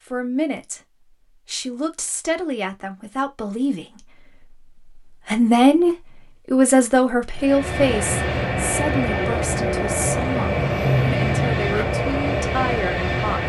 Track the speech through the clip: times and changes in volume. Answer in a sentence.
You can hear the speech from 0.1 to 13.4 s, getting louder then quieter.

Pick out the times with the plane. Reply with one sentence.
The plane can be heard from 7.3 to 13.4 s.